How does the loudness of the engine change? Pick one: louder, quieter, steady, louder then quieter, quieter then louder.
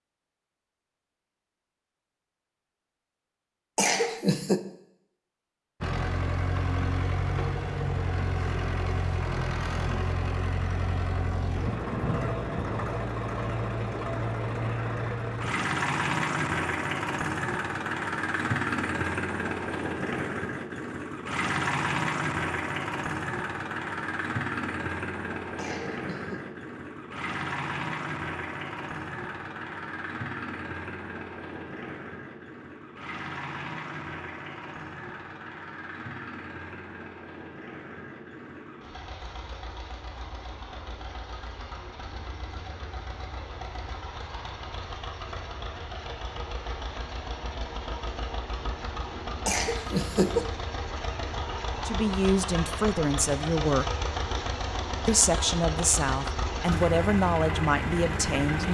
quieter then louder.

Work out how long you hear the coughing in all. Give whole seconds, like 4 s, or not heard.
3 s.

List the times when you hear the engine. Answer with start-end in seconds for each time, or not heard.
5.8-58.6.